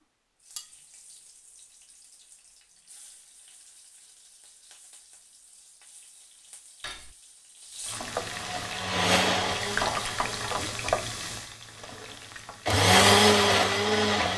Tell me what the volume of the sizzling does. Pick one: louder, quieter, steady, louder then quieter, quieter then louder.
louder.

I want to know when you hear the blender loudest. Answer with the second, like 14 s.
13 s.